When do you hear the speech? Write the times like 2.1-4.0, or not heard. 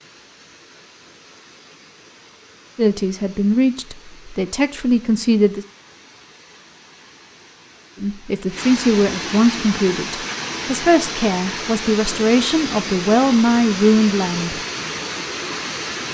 2.8-5.7, 8.0-14.6.